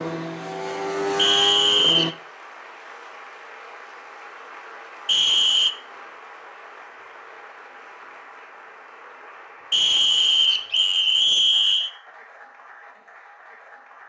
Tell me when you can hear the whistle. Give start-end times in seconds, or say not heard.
1.1-2.1, 5.0-5.7, 9.7-11.9.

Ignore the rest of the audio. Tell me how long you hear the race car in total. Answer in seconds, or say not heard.
2 s.